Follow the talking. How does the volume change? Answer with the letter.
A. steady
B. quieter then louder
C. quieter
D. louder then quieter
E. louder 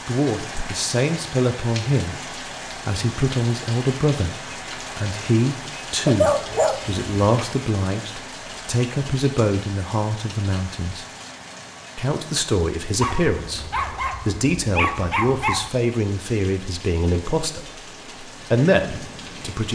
A.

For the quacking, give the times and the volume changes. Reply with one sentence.
The quacking can't be heard in this clip.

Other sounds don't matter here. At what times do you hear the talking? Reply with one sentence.
You can hear the talking from 0.1 to 11.1 s and from 11.9 to 19.6 s.